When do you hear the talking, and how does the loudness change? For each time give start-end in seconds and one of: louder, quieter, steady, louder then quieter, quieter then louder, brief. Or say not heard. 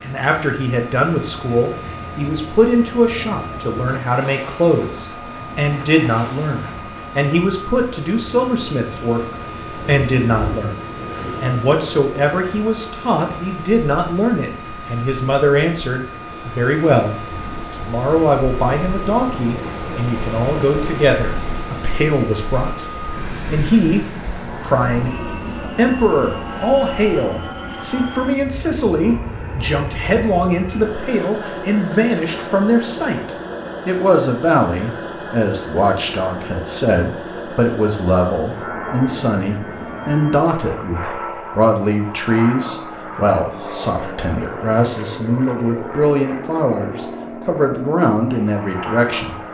0.0-49.4 steady.